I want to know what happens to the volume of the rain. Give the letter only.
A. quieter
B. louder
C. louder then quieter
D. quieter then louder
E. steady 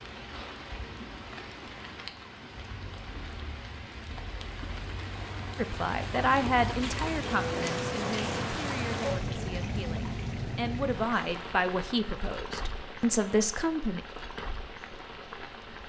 C.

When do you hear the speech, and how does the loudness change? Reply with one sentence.
The speech can be heard from 5.5 to 14.0 s, getting quieter then louder.